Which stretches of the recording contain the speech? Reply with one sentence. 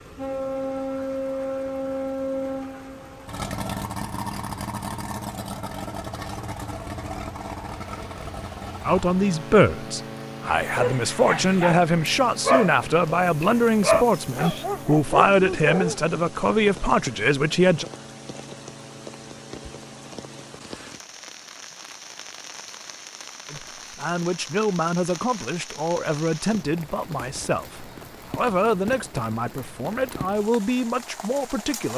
You can hear the speech from 8.8 to 17.9 s and from 23.5 to 31.9 s.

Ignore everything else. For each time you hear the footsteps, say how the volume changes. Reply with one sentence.
The footsteps can't be heard in this clip.